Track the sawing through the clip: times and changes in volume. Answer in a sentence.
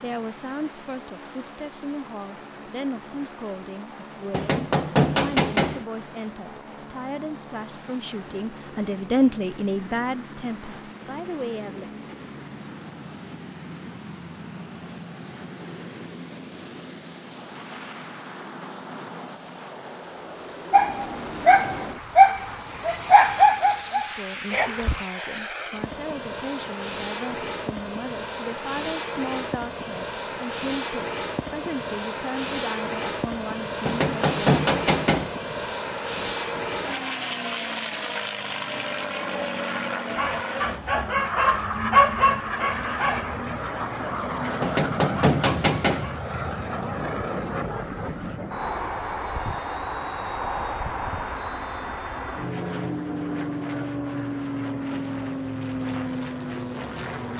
You can't hear the sawing here.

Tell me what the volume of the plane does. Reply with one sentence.
The loudness of the plane goes up.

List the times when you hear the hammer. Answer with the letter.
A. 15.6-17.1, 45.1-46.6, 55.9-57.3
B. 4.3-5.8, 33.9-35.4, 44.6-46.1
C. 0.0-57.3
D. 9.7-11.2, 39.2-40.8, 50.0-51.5
B.